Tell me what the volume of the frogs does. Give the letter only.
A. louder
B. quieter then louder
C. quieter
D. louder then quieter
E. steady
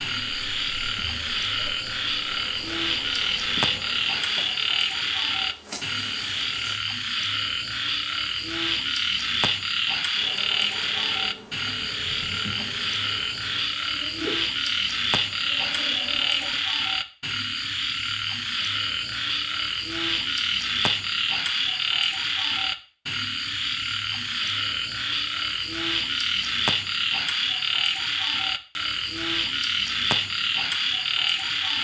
E.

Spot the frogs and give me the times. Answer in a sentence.
The frogs can be heard from 0.0 to 31.7 s.